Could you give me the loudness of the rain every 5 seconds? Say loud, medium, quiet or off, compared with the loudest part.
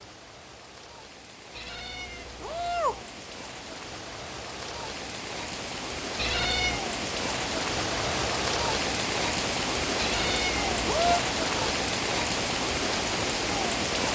quiet, loud, loud.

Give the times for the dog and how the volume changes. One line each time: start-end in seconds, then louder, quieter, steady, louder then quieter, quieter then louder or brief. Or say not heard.
not heard.